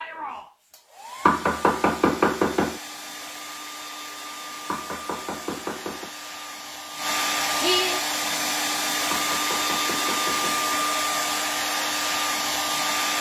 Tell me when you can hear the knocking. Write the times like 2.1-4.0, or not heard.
1.2-2.8, 4.7-6.1, 9.1-10.7.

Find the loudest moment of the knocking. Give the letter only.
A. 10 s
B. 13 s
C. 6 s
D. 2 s
D.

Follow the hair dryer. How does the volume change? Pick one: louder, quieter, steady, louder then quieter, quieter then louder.
louder.